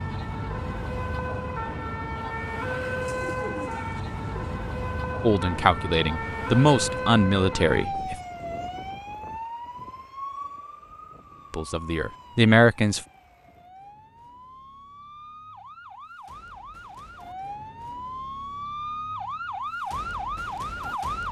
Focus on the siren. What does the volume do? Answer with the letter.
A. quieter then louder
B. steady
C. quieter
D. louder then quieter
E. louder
A.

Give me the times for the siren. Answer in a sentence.
The siren can be heard from 0.0 to 21.2 s.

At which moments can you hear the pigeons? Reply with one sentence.
The pigeons can be heard from 3.0 to 4.5 s.